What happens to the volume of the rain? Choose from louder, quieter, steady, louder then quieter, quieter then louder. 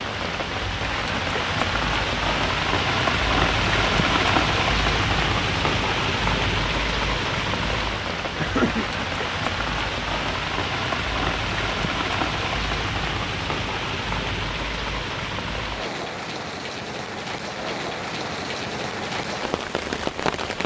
quieter.